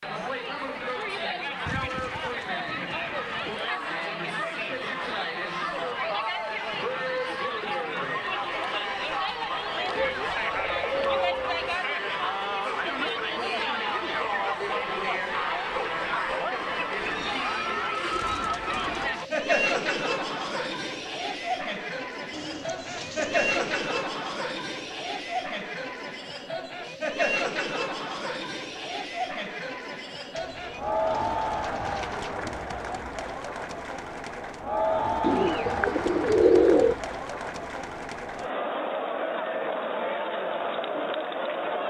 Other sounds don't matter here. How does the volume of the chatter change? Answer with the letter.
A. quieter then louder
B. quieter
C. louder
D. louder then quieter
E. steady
E.